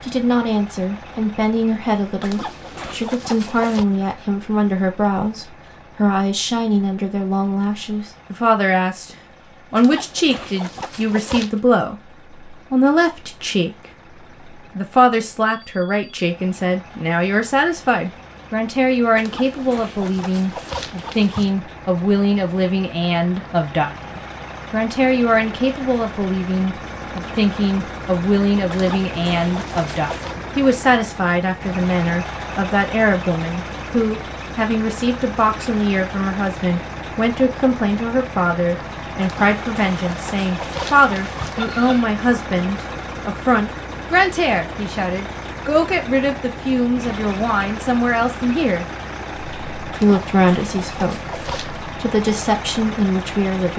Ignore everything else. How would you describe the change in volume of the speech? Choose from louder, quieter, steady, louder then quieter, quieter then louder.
steady.